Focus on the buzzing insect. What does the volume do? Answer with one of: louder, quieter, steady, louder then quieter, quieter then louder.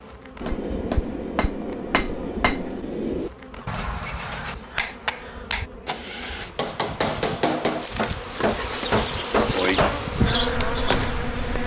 louder.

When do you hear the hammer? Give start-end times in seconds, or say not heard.
0.4-11.1.